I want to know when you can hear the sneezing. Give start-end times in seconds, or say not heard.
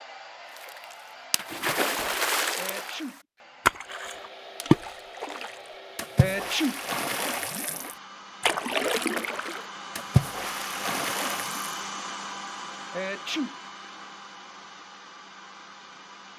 2.5-3.2, 6.2-6.8, 12.9-13.6.